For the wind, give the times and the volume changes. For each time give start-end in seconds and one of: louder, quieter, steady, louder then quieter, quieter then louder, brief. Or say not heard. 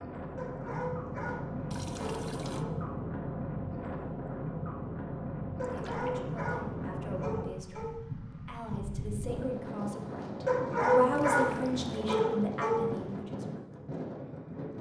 0.0-14.7 steady.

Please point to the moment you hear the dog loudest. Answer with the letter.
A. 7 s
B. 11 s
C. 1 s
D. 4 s
B.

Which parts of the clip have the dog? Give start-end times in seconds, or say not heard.
0.3-2.7, 5.5-7.9, 10.4-12.9.